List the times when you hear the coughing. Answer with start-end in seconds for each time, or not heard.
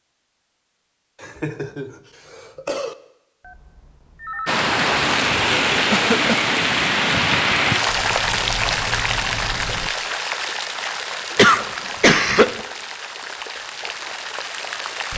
1.2-3.0, 5.9-6.5, 11.3-12.6.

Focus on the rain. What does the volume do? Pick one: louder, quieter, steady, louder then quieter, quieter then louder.
quieter.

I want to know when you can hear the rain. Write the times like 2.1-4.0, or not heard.
4.5-15.1.